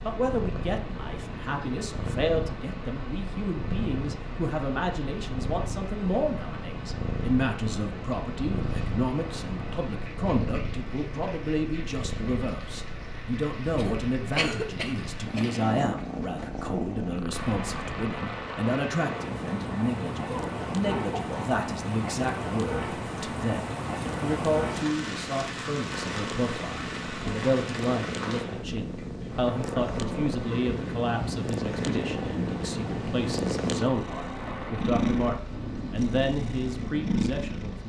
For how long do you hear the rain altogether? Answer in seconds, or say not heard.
38 s.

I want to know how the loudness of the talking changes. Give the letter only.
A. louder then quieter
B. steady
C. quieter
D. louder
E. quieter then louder
B.